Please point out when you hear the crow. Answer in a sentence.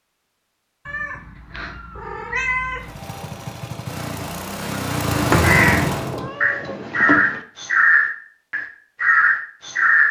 You can hear the crow from 5.1 to 10.0 s.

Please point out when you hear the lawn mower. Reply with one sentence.
You can hear the lawn mower from 2.8 to 6.2 s.